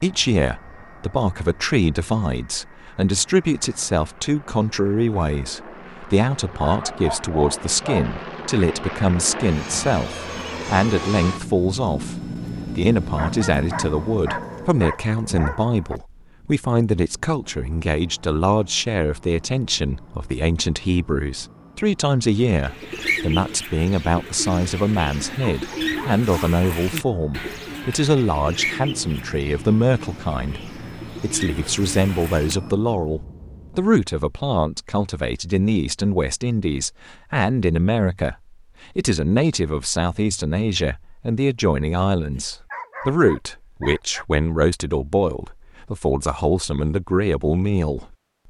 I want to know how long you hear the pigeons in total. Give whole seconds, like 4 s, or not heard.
10 s.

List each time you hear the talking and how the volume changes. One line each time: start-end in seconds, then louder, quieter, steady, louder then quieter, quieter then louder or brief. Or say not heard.
0.0-48.1 steady.